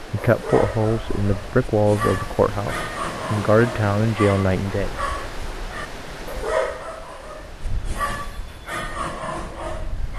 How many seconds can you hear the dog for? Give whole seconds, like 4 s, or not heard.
10 s.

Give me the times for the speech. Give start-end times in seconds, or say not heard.
0.1-5.0.